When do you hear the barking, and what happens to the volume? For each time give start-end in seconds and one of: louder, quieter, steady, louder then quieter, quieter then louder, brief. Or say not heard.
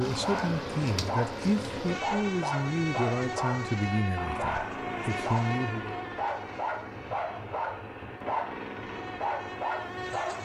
0.0-10.3 steady.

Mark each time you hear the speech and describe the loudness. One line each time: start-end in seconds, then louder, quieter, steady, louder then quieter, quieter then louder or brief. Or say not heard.
0.0-6.0 steady.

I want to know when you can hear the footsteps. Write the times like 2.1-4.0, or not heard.
not heard.